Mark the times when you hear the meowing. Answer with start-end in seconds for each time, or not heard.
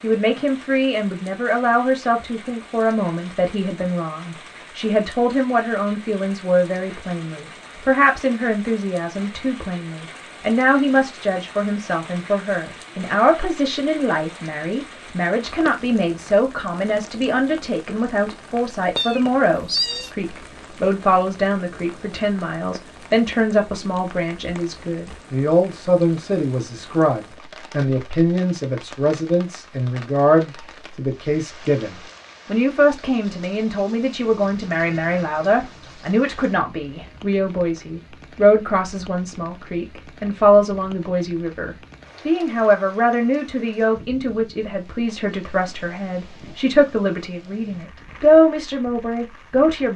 18.9-20.1, 34.2-36.2.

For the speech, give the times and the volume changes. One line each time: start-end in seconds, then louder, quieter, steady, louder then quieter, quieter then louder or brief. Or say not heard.
0.0-49.9 steady.